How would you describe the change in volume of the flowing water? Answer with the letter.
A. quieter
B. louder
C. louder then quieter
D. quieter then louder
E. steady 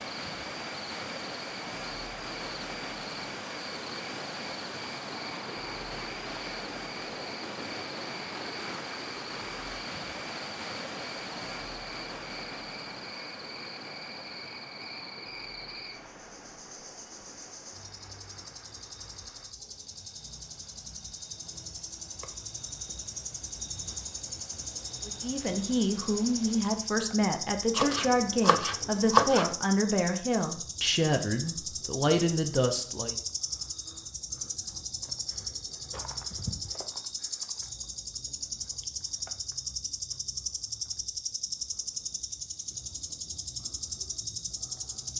A.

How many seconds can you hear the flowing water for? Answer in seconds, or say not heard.
27 s.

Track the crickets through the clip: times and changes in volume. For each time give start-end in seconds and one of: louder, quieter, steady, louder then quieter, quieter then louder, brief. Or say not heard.
0.0-45.1 louder.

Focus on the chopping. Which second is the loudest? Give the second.
29 s.